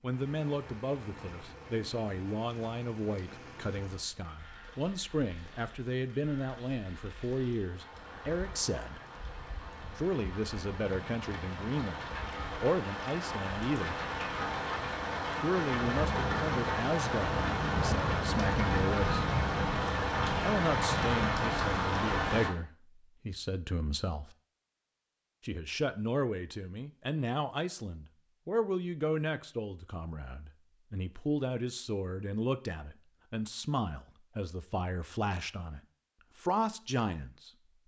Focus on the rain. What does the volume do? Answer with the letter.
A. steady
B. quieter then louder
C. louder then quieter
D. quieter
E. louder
E.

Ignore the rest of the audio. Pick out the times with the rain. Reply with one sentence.
The rain can be heard from 0.0 to 22.5 s.